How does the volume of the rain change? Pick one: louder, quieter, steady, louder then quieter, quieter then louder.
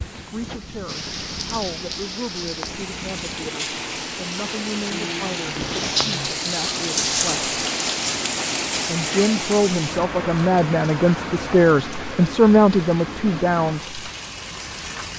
louder then quieter.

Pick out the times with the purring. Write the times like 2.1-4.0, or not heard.
0.0-3.5.